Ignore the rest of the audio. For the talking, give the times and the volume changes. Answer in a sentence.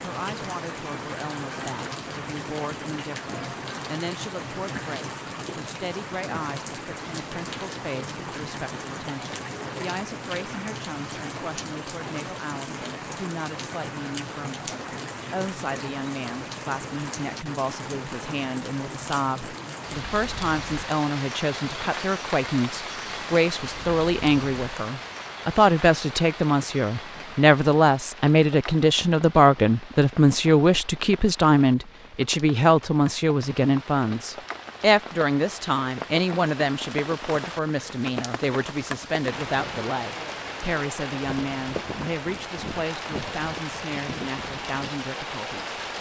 The talking can be heard from 0.0 to 45.8 s, getting louder then quieter.